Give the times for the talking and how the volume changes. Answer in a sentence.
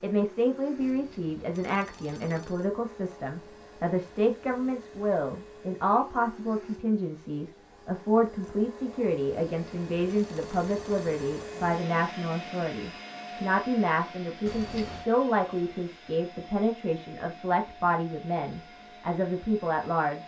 The talking can be heard from 0.0 to 20.2 s, at a steady volume.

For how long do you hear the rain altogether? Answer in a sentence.
The rain can't be heard in this clip.